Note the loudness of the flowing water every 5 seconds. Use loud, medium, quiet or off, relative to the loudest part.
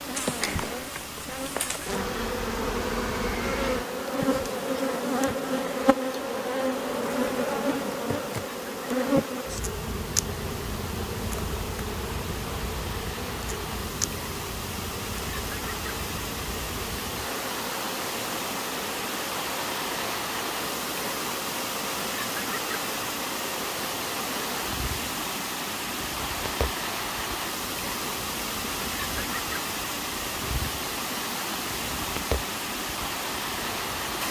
medium, medium, medium, loud, loud, loud, loud.